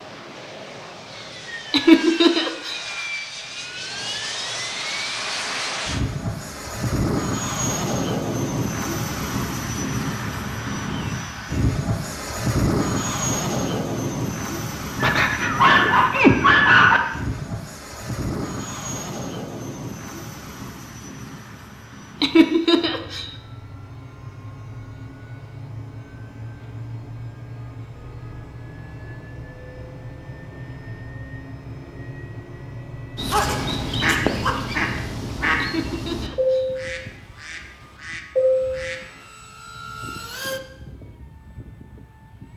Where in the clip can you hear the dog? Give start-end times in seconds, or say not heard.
15.0-17.0, 33.3-34.8.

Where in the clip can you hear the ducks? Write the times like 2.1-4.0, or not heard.
33.1-39.0.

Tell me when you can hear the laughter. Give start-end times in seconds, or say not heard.
1.7-2.8, 22.2-23.3, 35.6-36.6.